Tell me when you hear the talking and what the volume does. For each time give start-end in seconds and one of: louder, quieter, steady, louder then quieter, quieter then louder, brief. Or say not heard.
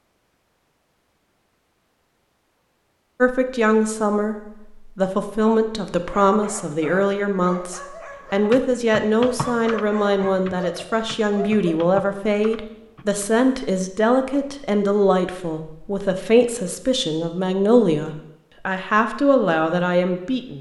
3.2-20.5 steady.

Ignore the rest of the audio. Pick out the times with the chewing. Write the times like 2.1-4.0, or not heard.
not heard.